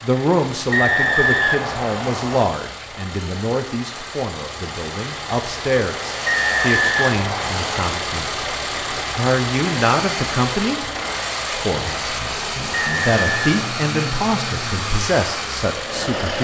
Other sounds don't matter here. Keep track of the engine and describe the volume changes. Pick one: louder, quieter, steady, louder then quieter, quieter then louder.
louder.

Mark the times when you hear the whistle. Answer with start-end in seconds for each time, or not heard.
0.7-2.5, 6.2-7.9, 12.7-13.7.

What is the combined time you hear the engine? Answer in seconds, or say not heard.
16 s.